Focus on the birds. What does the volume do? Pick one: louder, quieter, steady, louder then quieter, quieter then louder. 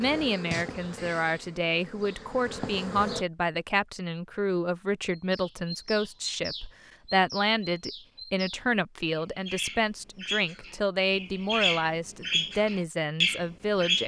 louder.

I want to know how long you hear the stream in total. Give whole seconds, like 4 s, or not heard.
not heard.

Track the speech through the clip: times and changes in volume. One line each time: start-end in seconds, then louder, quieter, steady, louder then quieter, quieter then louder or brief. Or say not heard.
0.0-14.0 steady.